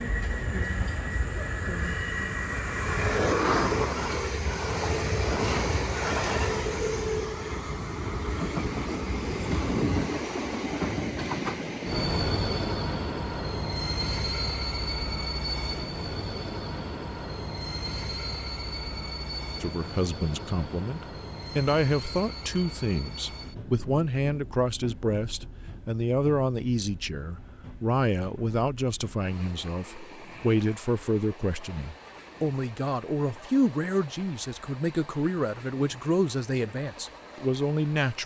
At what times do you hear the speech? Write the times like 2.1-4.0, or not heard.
19.6-38.2.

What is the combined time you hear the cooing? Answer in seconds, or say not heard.
not heard.